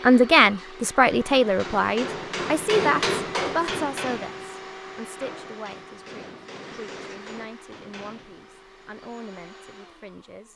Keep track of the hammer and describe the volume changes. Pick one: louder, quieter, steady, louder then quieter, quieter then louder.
louder then quieter.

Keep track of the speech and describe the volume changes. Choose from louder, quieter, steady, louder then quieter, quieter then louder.
quieter.